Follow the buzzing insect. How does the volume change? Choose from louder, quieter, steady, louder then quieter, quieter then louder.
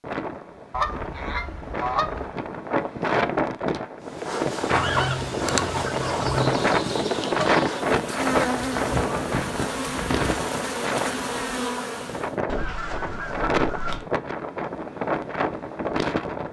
steady.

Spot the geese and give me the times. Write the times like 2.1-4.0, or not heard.
0.7-2.3, 4.7-6.6, 8.6-10.4, 12.4-14.1.